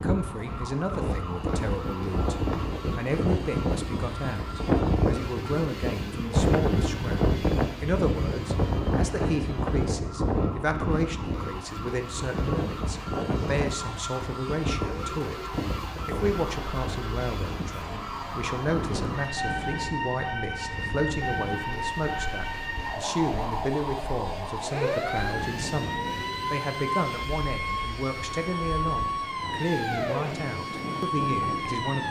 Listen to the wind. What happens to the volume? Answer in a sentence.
The volume of the wind goes down.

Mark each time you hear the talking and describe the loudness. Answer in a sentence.
The talking can be heard briefly from 0.0 to 2.4 s; and from 3.0 to 32.0 s, at a steady volume.